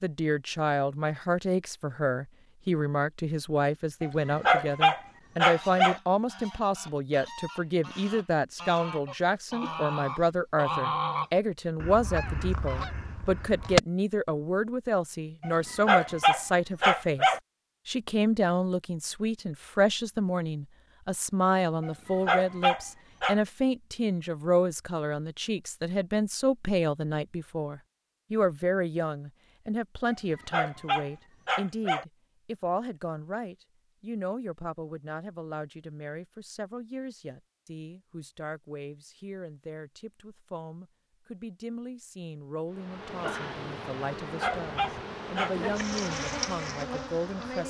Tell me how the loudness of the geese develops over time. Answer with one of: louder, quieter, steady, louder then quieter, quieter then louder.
louder then quieter.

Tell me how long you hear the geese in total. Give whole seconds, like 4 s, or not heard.
8 s.